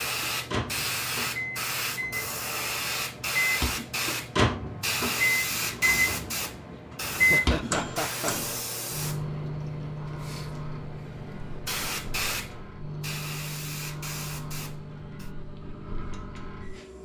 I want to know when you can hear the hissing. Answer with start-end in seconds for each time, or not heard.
0.0-15.3.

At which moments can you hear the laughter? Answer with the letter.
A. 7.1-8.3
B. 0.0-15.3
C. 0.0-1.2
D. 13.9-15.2
A.